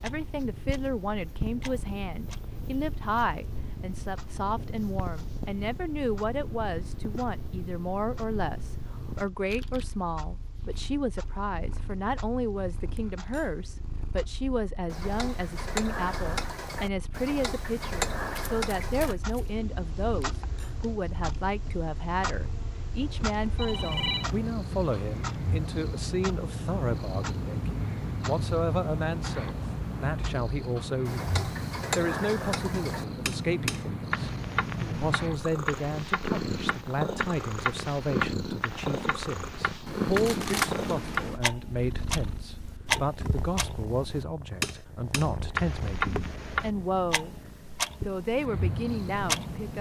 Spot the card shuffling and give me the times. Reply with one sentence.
The card shuffling can be heard from 9.4 to 10.8 s, from 18.2 to 19.6 s and from 39.9 to 41.4 s.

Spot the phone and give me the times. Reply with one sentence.
The phone can be heard from 23.0 to 24.2 s.